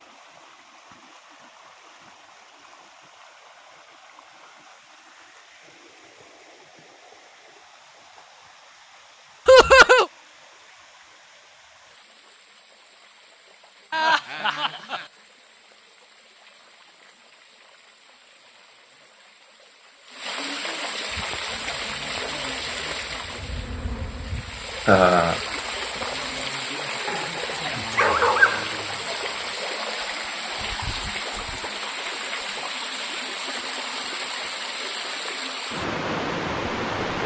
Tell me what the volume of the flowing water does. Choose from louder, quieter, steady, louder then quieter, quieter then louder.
louder.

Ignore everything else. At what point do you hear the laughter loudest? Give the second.
10 s.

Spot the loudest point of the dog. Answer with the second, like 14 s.
28 s.